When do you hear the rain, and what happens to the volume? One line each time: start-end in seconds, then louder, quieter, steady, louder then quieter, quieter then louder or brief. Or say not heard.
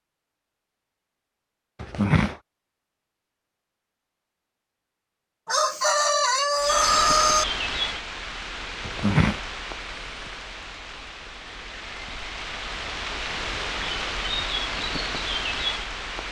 6.5-16.2 quieter then louder.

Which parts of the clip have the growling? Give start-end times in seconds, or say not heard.
1.8-2.4, 8.8-9.4.